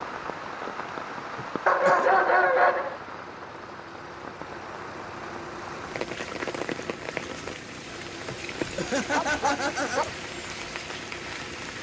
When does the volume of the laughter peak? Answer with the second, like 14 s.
9 s.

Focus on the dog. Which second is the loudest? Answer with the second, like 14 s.
2 s.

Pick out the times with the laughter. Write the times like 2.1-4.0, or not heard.
1.4-2.1, 8.3-10.2.